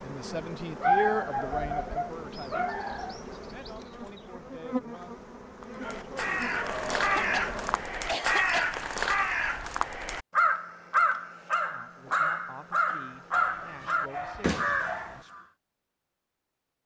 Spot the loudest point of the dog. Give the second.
1 s.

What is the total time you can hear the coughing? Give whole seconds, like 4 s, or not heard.
2 s.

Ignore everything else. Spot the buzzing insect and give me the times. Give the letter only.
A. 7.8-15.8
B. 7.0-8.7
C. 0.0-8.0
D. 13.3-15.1
C.